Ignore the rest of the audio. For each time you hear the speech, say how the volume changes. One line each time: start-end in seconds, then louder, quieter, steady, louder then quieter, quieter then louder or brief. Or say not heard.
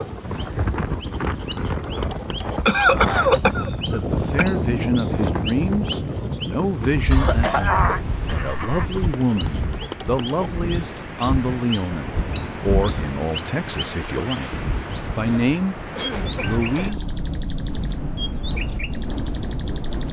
3.8-17.1 steady.